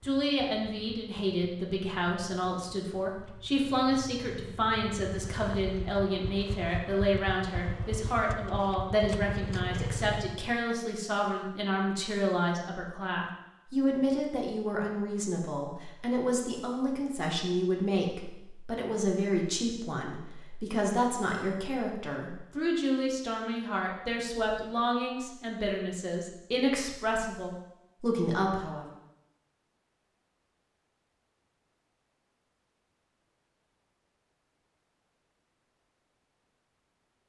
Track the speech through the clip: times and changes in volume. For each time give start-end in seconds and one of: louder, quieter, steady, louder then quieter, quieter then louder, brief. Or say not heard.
0.0-28.9 steady.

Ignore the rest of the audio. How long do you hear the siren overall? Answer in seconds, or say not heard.
not heard.